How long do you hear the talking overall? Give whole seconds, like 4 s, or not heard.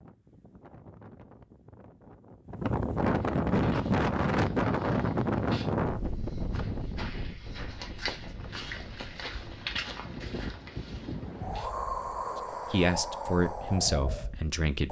2 s.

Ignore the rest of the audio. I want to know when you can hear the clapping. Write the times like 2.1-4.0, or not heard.
not heard.